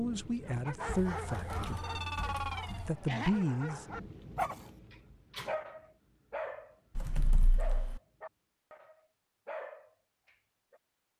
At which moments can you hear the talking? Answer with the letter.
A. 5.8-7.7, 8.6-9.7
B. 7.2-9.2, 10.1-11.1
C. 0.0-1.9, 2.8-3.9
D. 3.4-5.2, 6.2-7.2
C.